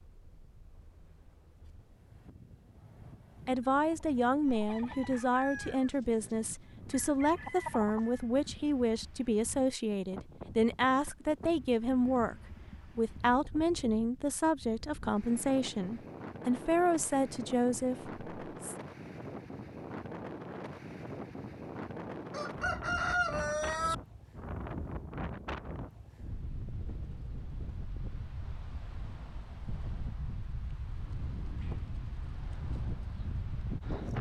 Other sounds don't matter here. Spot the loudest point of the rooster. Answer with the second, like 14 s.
23 s.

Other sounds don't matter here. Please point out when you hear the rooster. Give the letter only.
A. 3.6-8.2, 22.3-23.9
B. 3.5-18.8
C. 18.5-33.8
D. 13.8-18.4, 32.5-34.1
A.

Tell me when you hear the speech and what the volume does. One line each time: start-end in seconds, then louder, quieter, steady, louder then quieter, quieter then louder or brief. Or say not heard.
3.5-18.8 steady.